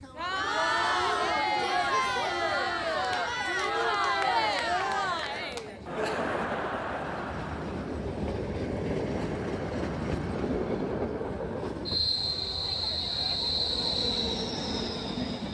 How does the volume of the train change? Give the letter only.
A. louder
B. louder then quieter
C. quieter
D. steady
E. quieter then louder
A.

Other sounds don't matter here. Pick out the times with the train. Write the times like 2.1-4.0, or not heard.
0.0-15.4.